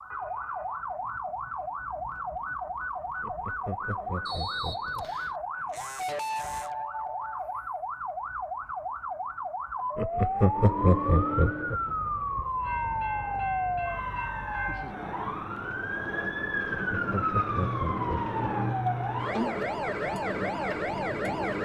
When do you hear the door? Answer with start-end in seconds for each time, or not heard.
not heard.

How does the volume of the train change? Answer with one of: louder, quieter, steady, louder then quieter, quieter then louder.
steady.